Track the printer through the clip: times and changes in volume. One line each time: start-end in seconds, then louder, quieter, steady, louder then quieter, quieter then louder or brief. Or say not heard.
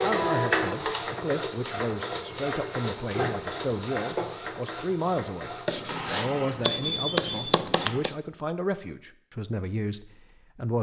0.0-8.1 quieter.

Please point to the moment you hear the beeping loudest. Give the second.
7 s.